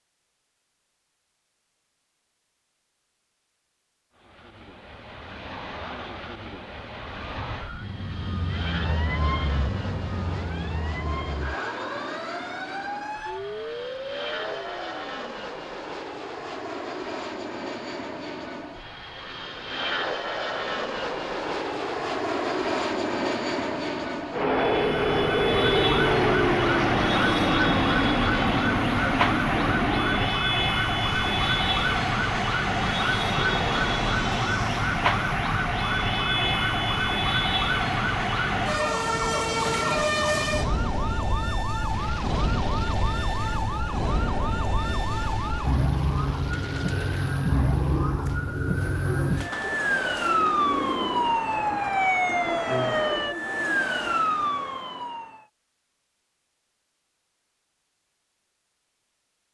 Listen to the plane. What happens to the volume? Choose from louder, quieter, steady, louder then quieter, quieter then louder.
louder then quieter.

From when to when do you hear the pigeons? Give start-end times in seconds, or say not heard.
45.8-54.2.